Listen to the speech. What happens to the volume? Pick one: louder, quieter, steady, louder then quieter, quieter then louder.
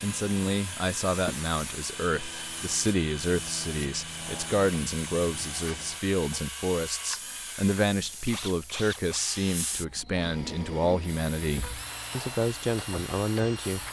steady.